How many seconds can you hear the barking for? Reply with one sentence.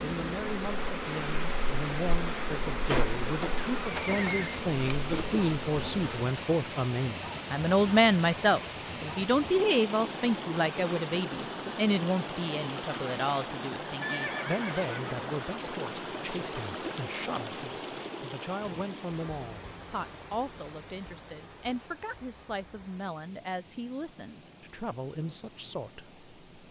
The barking can't be heard in this clip.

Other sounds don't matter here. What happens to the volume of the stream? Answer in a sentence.
The loudness of the stream goes down.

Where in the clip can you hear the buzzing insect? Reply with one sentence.
You can hear the buzzing insect from 0.0 to 6.2 s.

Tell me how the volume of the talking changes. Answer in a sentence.
The volume of the talking goes up, then down.